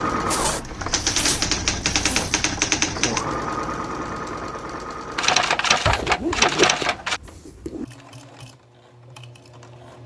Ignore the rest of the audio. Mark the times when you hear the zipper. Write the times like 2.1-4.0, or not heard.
0.2-2.4, 5.8-7.8.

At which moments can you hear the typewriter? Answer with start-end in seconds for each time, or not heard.
0.5-3.2, 5.2-7.2.